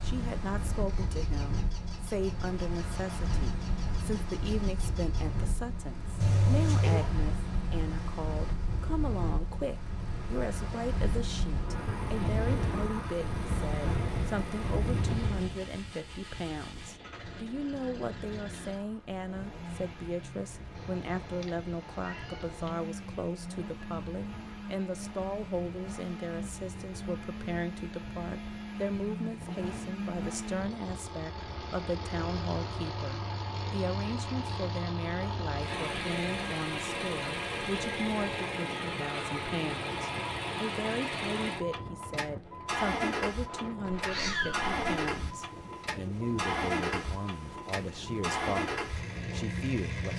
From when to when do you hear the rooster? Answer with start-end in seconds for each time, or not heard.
not heard.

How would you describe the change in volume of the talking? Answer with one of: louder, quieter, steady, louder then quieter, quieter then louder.
steady.